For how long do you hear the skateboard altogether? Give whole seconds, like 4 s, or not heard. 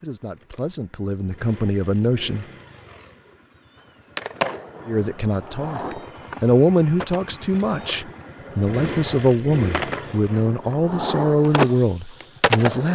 9 s.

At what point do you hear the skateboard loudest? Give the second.
12 s.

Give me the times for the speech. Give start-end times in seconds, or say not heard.
0.0-2.5, 4.8-12.8.